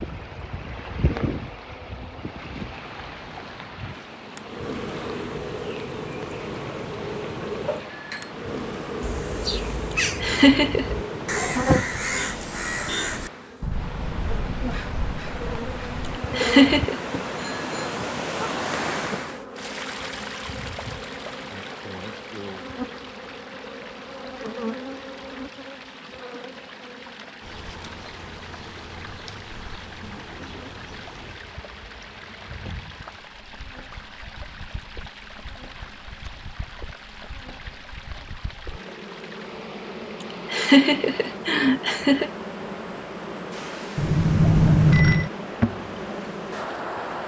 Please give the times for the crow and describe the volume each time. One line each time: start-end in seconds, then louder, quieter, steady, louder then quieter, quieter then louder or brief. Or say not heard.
9.0-16.2 quieter.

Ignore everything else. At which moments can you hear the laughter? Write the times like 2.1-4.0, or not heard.
9.9-10.9, 16.3-16.9, 40.2-42.3.